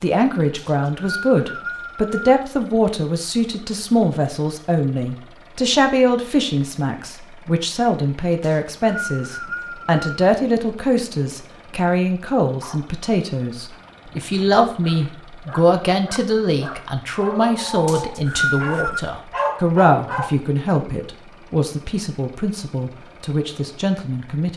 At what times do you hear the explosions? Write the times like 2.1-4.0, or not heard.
not heard.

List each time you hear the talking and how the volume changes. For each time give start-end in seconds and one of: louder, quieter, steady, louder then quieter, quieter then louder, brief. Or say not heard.
0.0-24.5 steady.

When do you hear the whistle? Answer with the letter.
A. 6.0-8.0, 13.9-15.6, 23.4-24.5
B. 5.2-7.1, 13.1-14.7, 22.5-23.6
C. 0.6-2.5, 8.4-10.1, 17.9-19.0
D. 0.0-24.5
C.